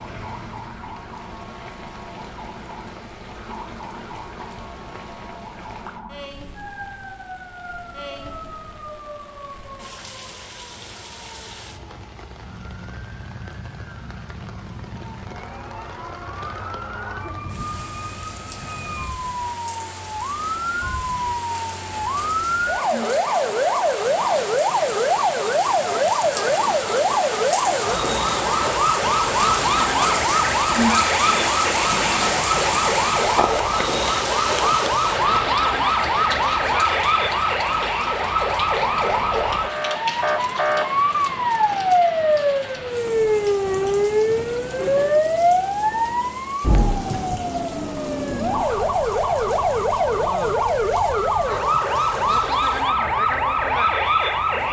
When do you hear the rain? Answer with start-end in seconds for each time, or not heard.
0.0-54.6.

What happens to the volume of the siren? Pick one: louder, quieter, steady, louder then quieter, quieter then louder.
louder.